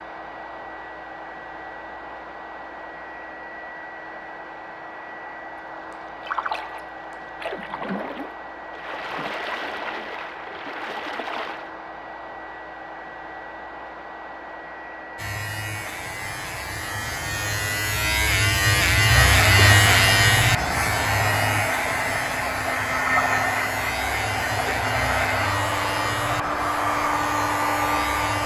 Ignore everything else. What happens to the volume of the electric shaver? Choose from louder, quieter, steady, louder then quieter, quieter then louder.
louder then quieter.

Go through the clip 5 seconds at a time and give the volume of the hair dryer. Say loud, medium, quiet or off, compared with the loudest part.
quiet, quiet, quiet, medium, loud, loud.